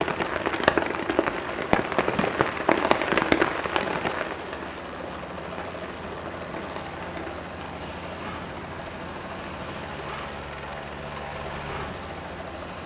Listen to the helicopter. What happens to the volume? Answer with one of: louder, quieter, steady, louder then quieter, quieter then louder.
steady.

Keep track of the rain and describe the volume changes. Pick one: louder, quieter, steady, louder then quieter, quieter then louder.
quieter.